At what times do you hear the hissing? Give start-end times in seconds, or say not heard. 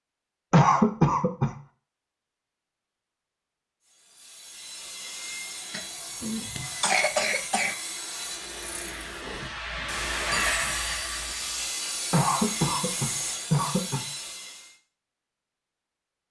8.4-11.7.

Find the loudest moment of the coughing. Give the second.
1 s.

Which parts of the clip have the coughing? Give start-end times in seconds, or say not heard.
0.5-1.5, 5.7-7.8, 12.1-14.0.